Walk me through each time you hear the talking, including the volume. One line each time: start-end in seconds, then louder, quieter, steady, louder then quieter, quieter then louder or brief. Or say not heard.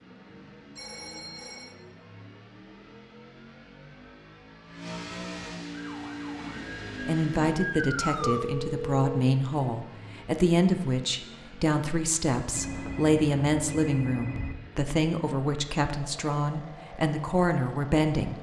7.0-18.3 steady.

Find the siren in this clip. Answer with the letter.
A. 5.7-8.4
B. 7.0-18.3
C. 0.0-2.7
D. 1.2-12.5
A.